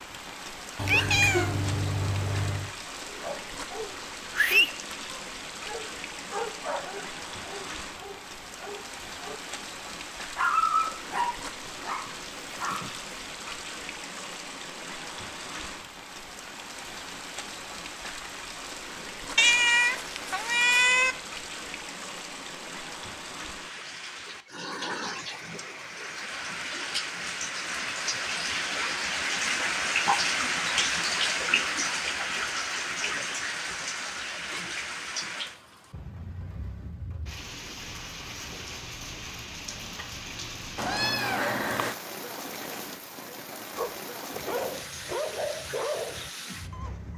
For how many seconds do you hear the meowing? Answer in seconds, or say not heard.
5 s.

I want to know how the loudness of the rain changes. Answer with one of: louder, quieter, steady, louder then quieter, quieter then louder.
louder then quieter.